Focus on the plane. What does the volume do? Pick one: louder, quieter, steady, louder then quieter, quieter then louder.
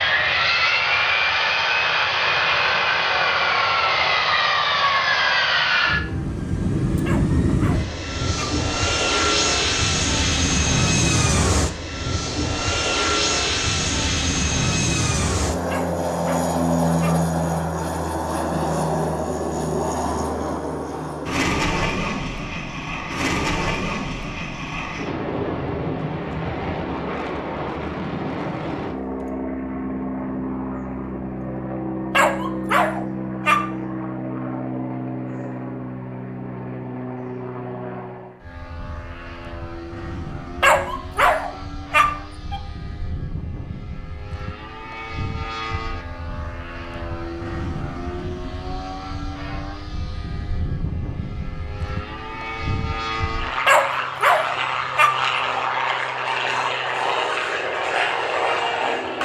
quieter then louder.